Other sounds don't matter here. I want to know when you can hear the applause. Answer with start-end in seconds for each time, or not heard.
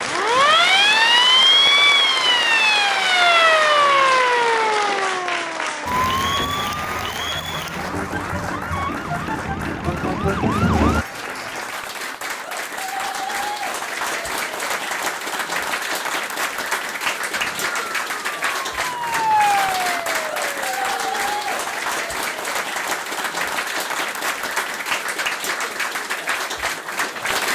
0.0-27.5.